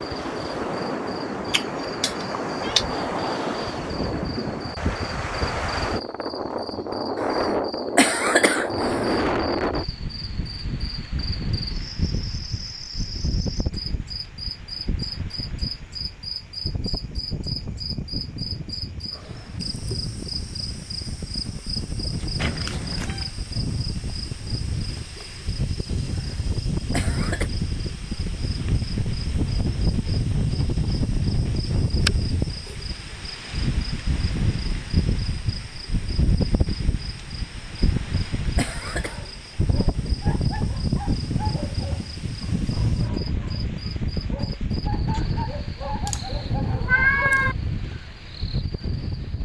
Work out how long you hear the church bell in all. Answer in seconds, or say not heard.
not heard.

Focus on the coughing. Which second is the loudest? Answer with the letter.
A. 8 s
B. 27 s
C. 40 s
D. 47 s
A.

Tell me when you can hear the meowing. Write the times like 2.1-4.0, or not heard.
1.4-2.9, 22.4-23.3, 46.0-47.5.